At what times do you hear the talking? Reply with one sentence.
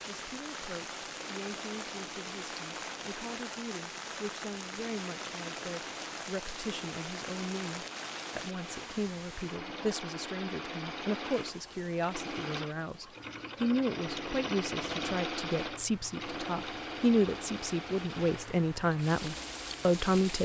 You can hear the talking from 0.1 to 20.3 s.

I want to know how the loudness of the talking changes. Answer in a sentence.
The loudness of the talking goes up.